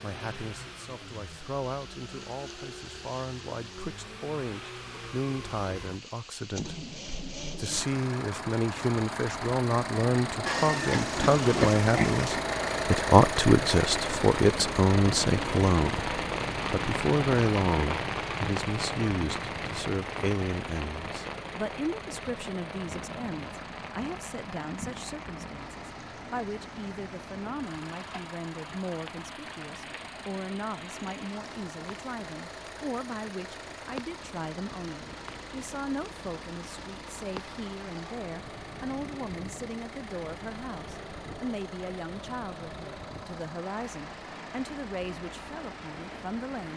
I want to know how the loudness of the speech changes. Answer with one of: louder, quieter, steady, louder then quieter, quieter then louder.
louder then quieter.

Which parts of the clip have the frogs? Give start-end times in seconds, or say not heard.
not heard.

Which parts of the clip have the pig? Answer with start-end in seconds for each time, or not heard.
10.4-12.4.